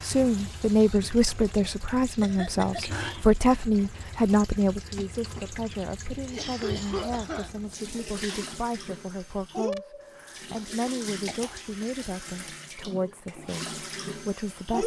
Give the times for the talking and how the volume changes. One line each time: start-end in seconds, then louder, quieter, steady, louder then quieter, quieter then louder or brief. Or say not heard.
0.0-14.8 quieter.